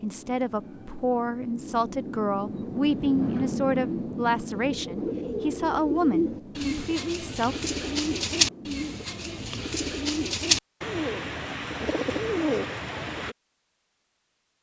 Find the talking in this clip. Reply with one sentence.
You can hear the talking from 0.0 to 7.5 s.